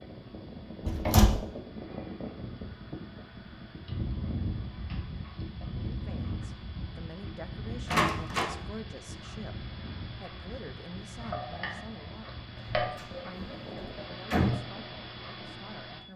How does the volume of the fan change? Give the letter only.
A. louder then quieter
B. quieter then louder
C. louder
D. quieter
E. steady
D.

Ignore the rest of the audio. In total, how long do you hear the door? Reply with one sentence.
You can hear the door for 3 seconds altogether.